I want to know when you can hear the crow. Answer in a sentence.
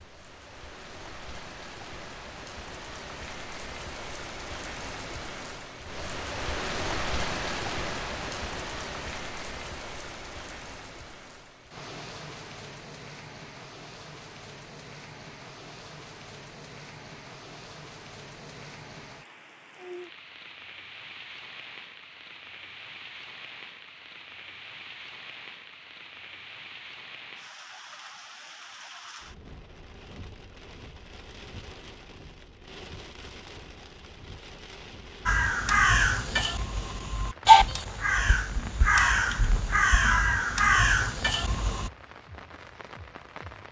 You can hear the crow from 35.2 to 41.9 s.